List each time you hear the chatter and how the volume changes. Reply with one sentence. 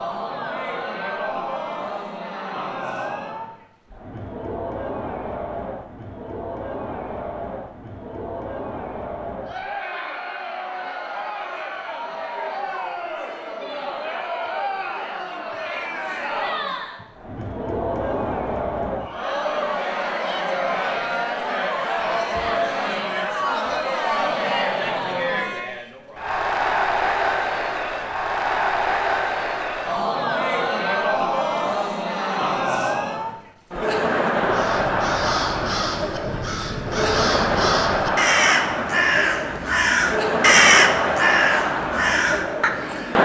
You can hear the chatter from 0.0 to 43.2 s, getting louder.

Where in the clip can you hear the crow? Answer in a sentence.
You can hear the crow from 34.3 to 43.0 s.